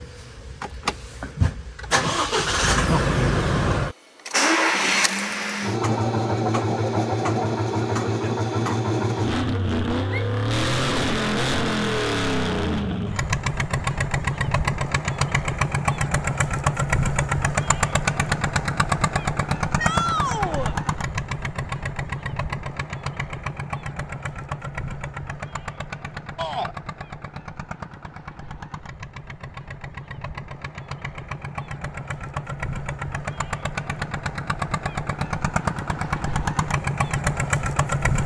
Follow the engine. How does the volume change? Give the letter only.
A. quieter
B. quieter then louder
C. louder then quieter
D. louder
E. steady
B.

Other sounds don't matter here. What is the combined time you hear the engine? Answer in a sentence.
You can hear the engine for 38 seconds altogether.